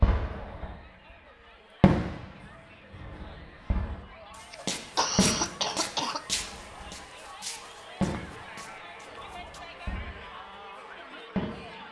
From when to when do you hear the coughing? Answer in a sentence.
The coughing can be heard from 4.5 to 6.2 s.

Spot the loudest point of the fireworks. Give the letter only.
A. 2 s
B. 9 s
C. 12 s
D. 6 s
A.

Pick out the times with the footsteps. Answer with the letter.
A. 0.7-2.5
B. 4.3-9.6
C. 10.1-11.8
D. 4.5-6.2
B.